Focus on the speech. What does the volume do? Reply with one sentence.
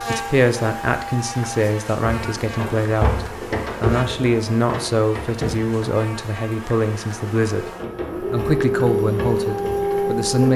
The loudness of the speech stays about the same.